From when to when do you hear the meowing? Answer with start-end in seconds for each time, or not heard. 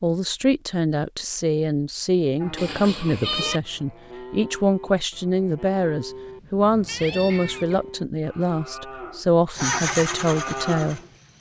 2.5-3.6, 6.8-8.0.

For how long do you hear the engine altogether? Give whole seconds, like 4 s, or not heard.
2 s.